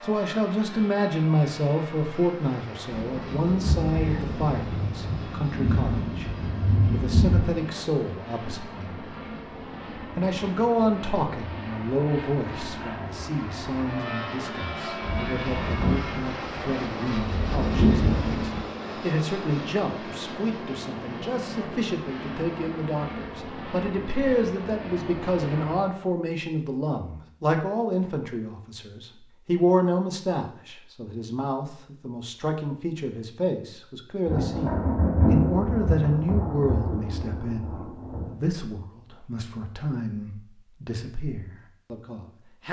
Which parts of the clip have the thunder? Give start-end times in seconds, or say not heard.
2.9-7.6, 15.0-18.6, 34.2-38.4.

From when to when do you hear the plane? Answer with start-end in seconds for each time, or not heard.
0.0-26.0.